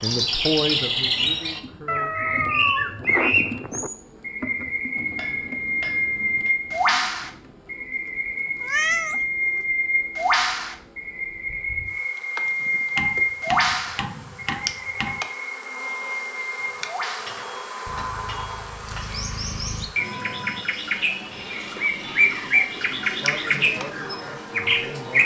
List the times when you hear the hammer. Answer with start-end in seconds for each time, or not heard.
5.0-6.5, 12.7-15.2, 17.2-19.2.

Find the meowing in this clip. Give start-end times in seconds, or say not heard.
1.9-3.9, 8.6-9.6, 19.9-20.6.